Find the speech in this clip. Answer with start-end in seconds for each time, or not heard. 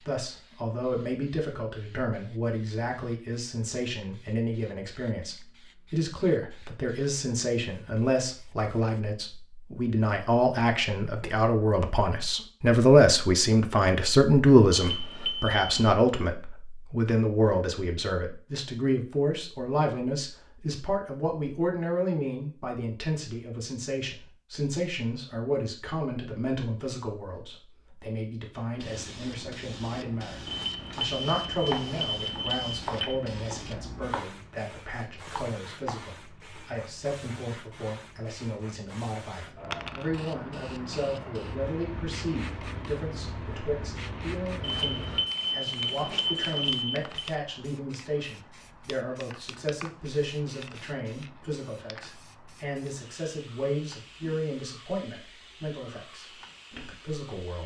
0.0-57.6.